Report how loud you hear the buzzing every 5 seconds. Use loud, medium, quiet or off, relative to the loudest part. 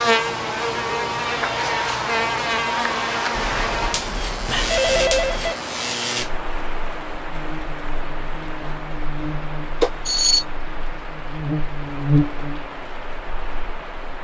loud, medium, loud.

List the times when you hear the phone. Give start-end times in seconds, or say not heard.
3.4-5.5, 9.8-10.4.